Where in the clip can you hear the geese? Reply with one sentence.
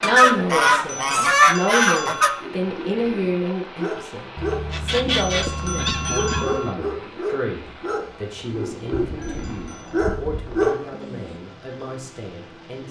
You can hear the geese from 0.0 to 2.4 s, from 4.3 to 6.6 s and from 9.1 to 10.7 s.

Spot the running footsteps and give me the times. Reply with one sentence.
You can't hear the running footsteps here.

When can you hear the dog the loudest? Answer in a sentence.
The volume of the dog peaks at 11 seconds.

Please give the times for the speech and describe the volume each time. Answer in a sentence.
You can hear the speech from 0.0 to 12.8 s, getting quieter.